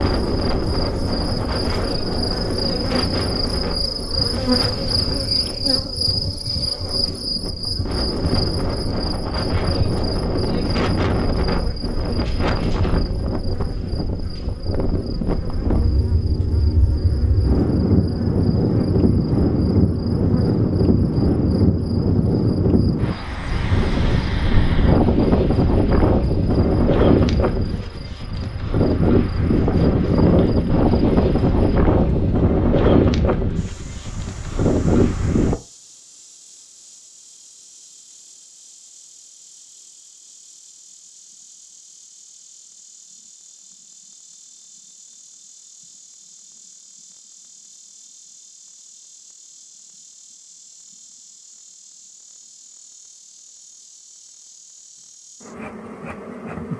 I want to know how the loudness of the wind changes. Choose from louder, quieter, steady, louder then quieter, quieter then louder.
louder.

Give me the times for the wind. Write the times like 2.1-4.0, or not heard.
0.0-35.5.